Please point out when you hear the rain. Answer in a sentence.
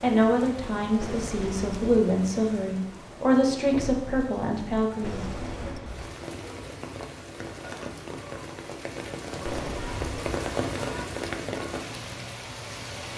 The rain can be heard from 0.0 to 13.1 s.